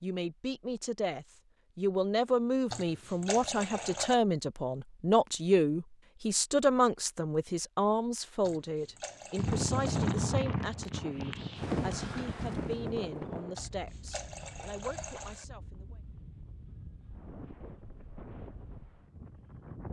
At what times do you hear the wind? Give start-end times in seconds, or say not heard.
9.3-19.8.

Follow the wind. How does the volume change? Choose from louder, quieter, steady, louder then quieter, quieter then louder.
quieter.